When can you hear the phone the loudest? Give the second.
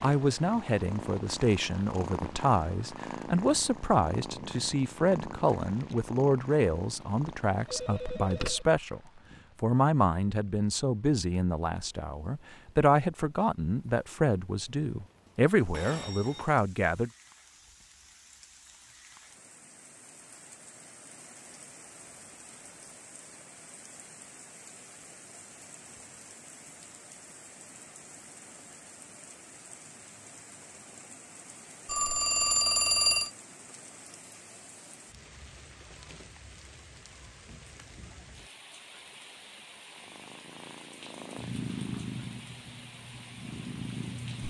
33 s.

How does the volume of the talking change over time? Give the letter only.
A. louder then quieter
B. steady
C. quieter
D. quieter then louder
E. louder
B.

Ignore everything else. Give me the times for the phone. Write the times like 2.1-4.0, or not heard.
7.7-8.7, 15.7-16.5, 31.9-33.3.